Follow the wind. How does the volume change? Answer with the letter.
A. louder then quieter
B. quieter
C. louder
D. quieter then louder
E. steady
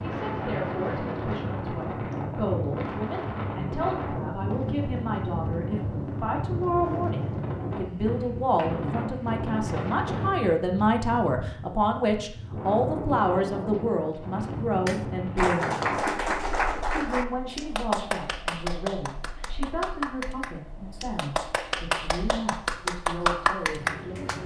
B.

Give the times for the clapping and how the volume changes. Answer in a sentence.
The clapping can be heard from 14.8 to 24.4 s, getting quieter then louder.